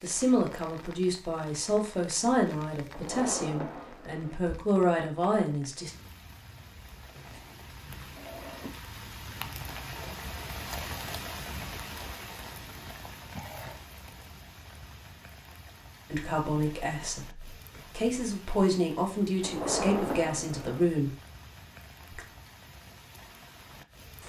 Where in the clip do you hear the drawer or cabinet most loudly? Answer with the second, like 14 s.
20 s.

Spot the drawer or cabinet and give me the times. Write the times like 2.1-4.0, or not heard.
2.9-4.4, 8.2-8.8, 19.4-20.9.